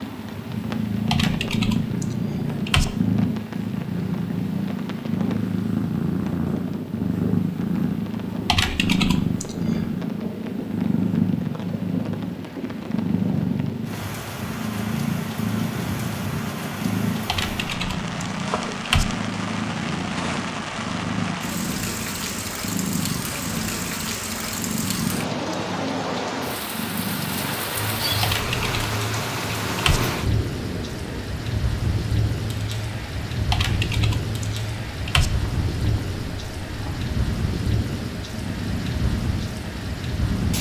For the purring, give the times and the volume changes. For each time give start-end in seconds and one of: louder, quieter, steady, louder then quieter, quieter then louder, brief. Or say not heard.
0.0-40.5 quieter.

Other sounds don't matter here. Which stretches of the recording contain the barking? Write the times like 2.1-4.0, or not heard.
not heard.